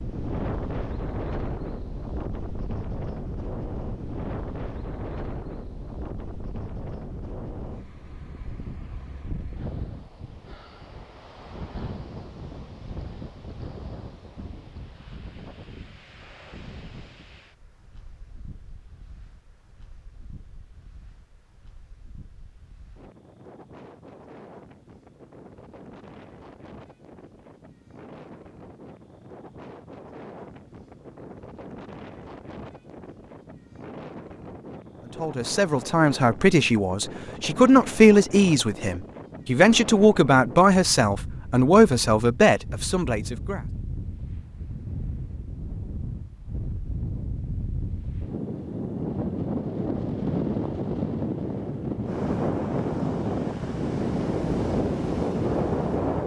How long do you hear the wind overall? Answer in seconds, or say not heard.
56 s.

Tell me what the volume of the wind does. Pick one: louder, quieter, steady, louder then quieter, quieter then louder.
quieter then louder.